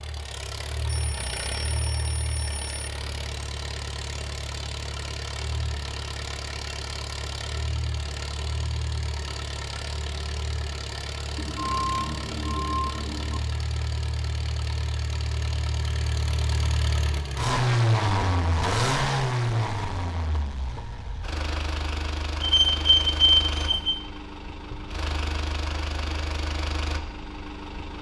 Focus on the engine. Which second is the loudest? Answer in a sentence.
The loudest moment of the engine is at 18 seconds.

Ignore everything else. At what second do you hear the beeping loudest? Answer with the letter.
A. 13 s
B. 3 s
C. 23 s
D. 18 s
C.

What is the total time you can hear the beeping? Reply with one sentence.
You can hear the beeping for 6 seconds altogether.